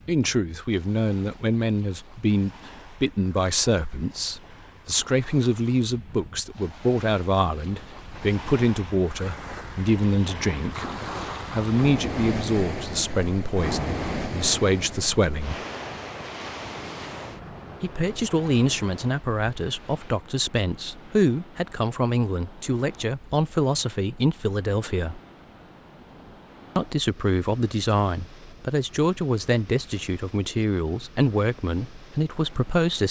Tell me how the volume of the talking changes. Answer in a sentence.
The loudness of the talking stays about the same.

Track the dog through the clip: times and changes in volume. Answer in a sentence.
You can't hear the dog here.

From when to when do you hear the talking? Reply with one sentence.
The talking can be heard from 0.1 to 10.8 s, from 11.5 to 15.6 s, from 17.8 to 25.2 s and from 26.8 to 33.0 s.